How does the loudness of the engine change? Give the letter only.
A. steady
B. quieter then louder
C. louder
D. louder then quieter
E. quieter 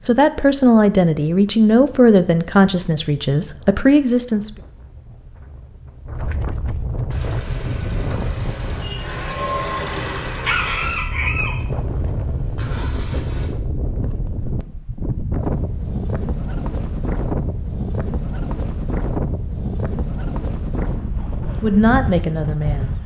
D.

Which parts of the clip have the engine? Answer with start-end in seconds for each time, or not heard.
7.1-13.5.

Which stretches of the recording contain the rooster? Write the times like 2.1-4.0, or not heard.
10.4-11.6.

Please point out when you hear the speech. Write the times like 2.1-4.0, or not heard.
0.0-4.5, 21.6-22.9.